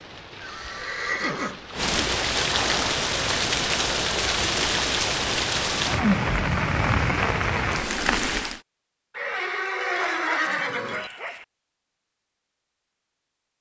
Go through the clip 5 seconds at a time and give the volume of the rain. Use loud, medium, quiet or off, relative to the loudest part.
loud, loud, off.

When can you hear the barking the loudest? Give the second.
10 s.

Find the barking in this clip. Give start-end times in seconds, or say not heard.
9.9-11.4.